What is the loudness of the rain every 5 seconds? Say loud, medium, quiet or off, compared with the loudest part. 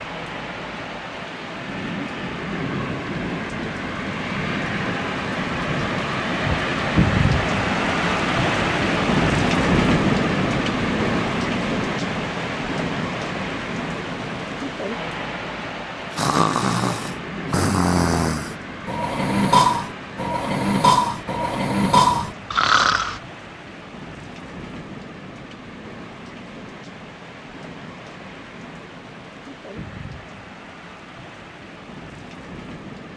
medium, loud, loud, medium, quiet, quiet, quiet.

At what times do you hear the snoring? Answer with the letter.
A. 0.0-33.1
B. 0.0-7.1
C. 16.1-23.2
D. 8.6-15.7
C.